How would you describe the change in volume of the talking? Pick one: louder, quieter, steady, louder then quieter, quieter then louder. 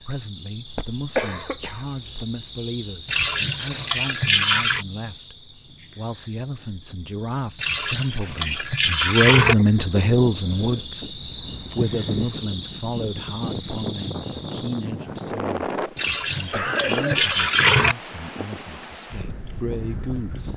louder then quieter.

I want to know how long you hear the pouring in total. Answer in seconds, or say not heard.
6 s.